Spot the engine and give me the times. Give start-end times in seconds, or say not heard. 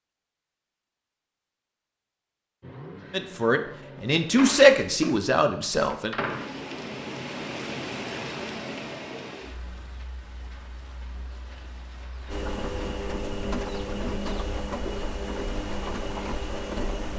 2.6-4.8, 12.2-17.1.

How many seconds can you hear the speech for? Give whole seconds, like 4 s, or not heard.
3 s.